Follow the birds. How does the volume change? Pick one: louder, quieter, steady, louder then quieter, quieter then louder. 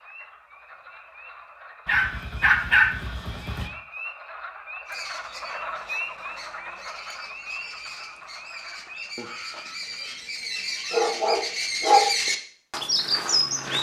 louder.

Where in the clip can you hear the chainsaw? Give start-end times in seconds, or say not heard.
not heard.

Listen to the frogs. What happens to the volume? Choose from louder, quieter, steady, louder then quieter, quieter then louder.
louder then quieter.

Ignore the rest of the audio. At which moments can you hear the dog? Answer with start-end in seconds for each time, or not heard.
1.9-3.7, 10.9-12.1.